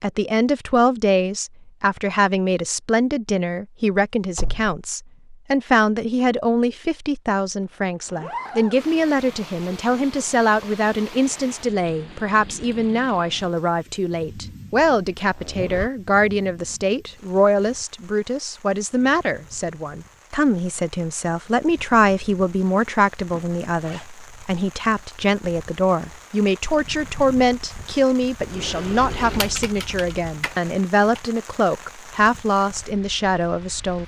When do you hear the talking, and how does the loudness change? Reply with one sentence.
You can hear the talking from 0.0 to 34.0 s, at a steady volume.